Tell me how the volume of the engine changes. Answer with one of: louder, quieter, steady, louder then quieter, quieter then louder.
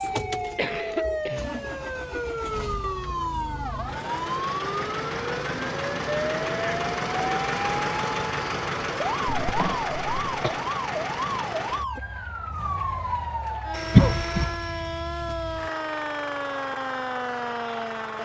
louder then quieter.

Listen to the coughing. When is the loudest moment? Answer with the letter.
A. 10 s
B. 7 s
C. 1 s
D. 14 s
D.